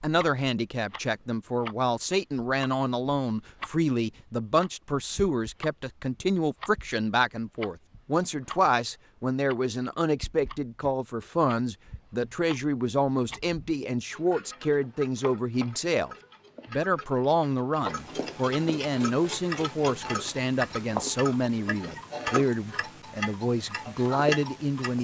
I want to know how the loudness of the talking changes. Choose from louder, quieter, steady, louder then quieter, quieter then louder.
steady.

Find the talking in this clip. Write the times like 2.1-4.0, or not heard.
0.0-24.9.